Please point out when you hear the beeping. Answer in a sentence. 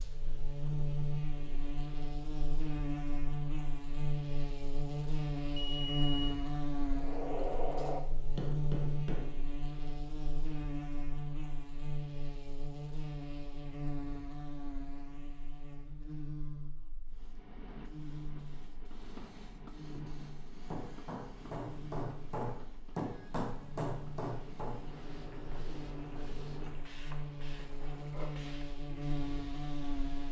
You can hear the beeping from 5.5 to 6.3 s.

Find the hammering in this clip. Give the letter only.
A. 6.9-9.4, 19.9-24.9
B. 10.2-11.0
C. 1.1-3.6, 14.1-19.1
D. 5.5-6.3
A.